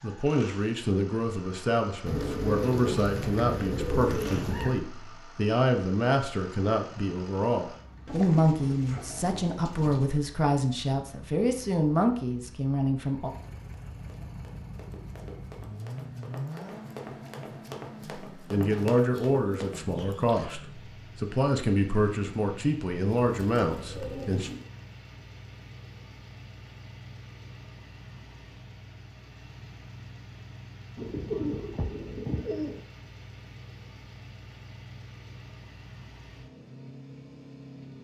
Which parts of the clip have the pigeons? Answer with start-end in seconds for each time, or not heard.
2.0-4.8, 8.1-10.1, 19.1-20.6, 23.1-24.6, 30.9-32.8.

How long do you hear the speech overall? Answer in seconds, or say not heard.
19 s.